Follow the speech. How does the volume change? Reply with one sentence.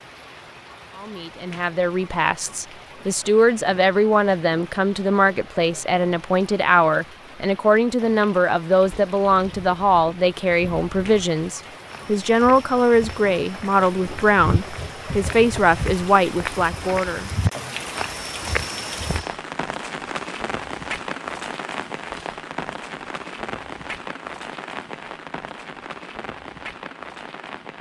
The loudness of the speech stays about the same.